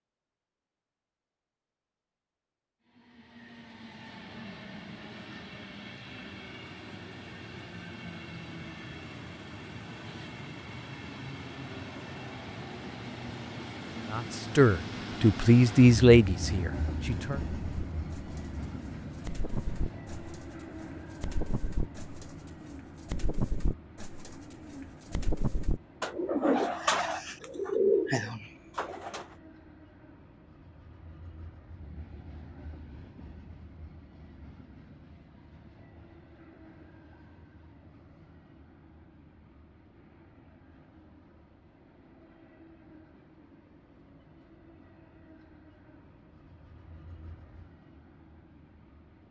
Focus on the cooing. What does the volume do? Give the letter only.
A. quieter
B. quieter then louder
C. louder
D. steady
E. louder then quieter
C.